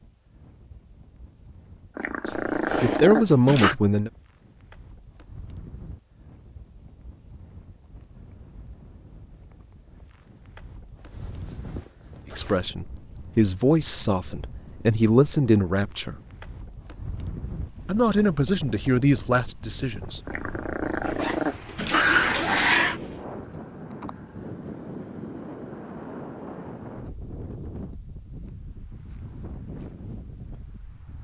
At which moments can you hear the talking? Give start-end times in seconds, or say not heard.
2.2-4.1, 12.3-16.1, 17.9-20.2.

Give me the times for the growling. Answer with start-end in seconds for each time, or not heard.
1.9-3.8, 20.2-23.0.